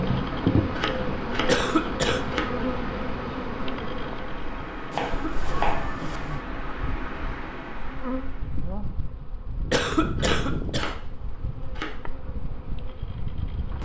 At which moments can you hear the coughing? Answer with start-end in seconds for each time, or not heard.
1.4-2.2, 5.0-6.2, 9.7-10.9.